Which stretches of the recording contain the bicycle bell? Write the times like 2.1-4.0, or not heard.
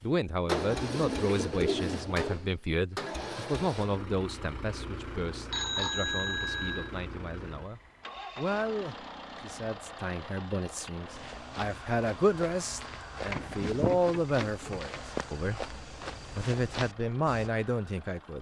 5.5-6.9.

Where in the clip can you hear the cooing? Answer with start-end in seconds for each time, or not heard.
0.6-2.2, 13.2-14.9.